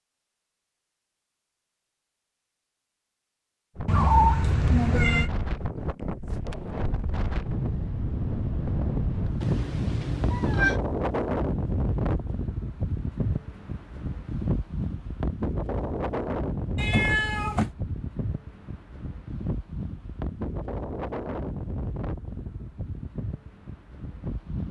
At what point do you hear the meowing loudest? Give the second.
4 s.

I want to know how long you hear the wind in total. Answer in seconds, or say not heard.
21 s.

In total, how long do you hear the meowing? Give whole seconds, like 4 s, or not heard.
4 s.